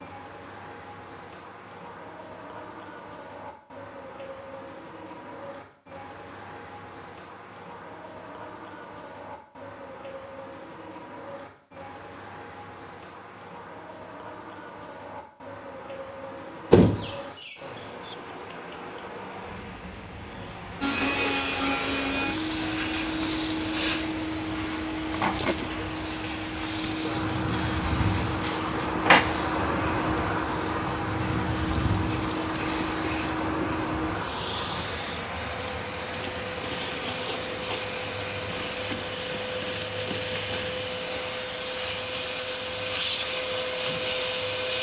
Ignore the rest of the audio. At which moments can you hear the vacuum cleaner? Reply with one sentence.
The vacuum cleaner can be heard from 20.8 to 44.7 s.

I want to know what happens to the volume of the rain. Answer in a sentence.
The volume of the rain goes up, then down.